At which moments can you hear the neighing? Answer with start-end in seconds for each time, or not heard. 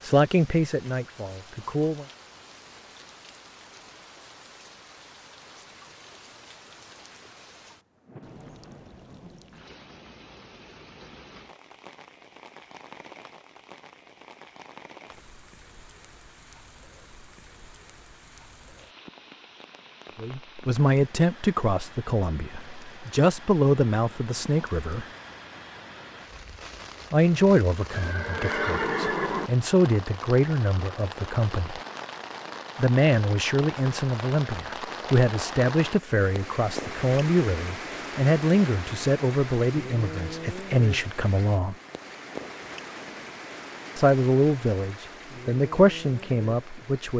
27.9-29.5.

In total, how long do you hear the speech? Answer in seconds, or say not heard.
24 s.